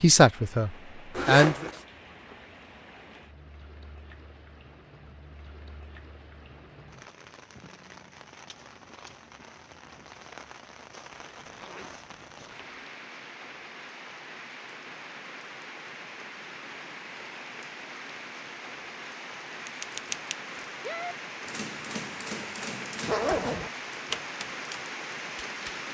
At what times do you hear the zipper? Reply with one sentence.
You can hear the zipper from 1.1 to 1.8 s, from 11.1 to 12.8 s and from 23.1 to 23.7 s.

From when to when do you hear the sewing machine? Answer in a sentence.
The sewing machine can't be heard in this clip.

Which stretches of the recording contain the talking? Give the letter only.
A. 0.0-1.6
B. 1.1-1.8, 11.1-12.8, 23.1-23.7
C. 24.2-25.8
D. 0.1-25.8
A.